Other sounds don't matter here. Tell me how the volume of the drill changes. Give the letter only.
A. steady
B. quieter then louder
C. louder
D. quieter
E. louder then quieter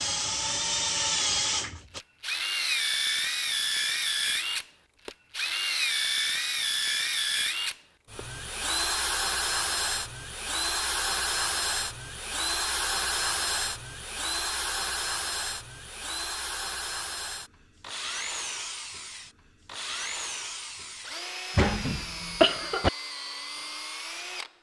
D.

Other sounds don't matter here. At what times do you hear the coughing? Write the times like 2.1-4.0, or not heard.
21.6-22.9.